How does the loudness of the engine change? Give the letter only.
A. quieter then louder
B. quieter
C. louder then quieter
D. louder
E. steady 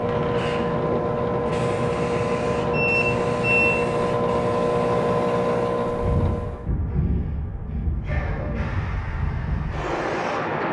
E.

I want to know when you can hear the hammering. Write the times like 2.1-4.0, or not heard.
not heard.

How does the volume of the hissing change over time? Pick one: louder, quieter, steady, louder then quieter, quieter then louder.
steady.